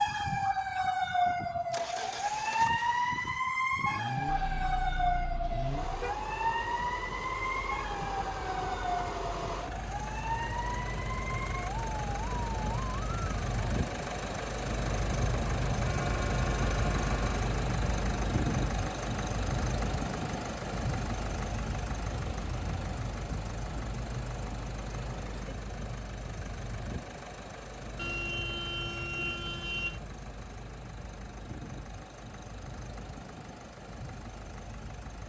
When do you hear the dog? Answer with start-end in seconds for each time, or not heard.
not heard.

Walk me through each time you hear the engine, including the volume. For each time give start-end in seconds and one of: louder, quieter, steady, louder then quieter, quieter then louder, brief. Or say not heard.
0.0-35.2 louder then quieter.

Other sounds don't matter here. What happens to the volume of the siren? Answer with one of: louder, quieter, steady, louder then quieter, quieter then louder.
quieter.